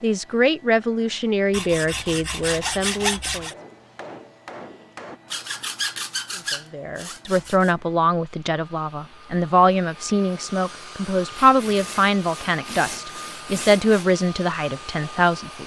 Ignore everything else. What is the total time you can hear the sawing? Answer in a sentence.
You can hear the sawing for 7 seconds altogether.